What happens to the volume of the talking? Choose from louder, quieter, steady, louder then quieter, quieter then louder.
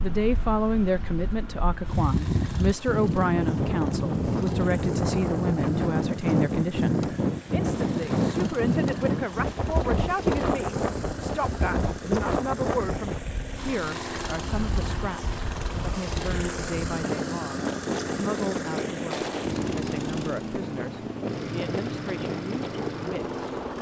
quieter.